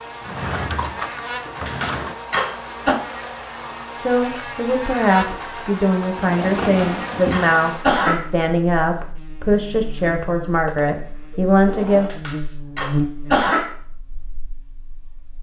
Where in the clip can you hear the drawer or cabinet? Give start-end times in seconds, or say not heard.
0.2-2.1, 5.9-7.5, 10.7-12.2.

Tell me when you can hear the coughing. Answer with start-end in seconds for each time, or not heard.
1.6-3.0, 6.6-8.2, 12.1-13.7.